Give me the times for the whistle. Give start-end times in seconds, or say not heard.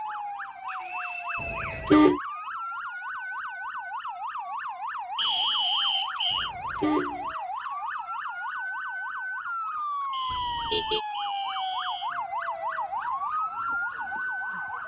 0.7-1.9, 5.2-6.5, 10.1-12.2.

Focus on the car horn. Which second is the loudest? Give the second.
2 s.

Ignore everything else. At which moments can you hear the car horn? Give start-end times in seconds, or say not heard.
1.4-2.2, 6.3-7.3, 10.3-11.0.